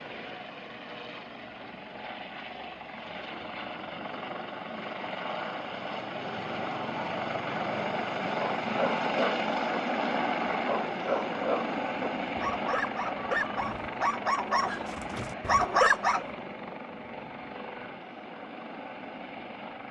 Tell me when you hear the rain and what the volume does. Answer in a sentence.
You can't hear the rain here.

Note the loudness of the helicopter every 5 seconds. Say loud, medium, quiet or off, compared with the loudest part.
medium, loud, loud, medium.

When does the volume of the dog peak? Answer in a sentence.
The volume of the dog peaks at 16 seconds.